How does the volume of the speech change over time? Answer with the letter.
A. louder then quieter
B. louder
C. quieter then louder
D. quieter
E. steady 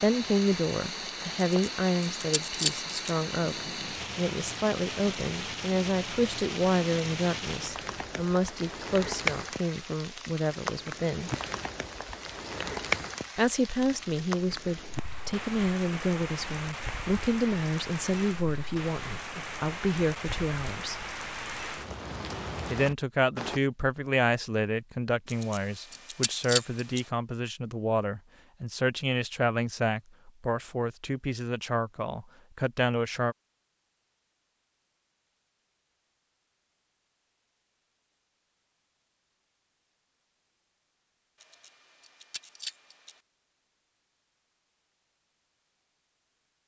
E.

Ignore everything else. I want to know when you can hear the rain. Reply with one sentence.
The rain can be heard from 0.0 to 23.6 s.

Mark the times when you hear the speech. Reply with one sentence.
The speech can be heard from 0.0 to 11.3 s, from 13.3 to 21.0 s and from 22.7 to 33.4 s.